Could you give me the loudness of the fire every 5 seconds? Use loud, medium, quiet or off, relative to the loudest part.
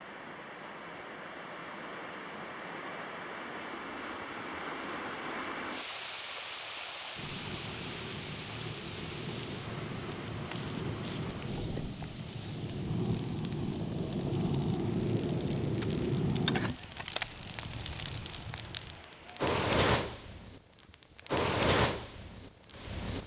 off, medium, loud, loud, loud.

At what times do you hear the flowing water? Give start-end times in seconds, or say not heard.
0.0-19.6.